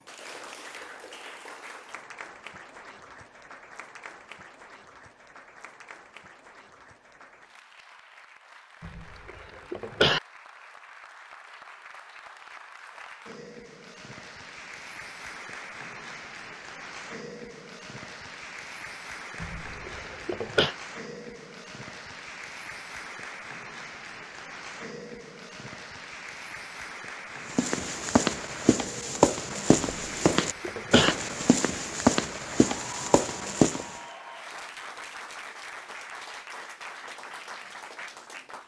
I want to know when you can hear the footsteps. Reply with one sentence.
The footsteps can be heard from 27.5 to 34.0 s.